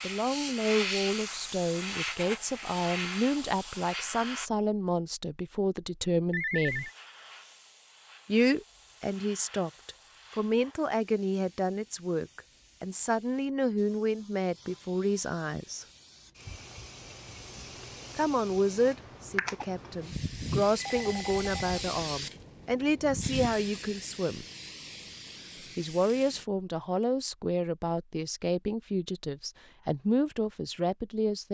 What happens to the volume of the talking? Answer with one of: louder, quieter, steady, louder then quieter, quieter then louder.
steady.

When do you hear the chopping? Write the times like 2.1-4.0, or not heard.
not heard.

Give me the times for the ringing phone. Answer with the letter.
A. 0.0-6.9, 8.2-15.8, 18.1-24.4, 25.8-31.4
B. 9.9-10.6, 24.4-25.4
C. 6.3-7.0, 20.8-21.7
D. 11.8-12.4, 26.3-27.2
C.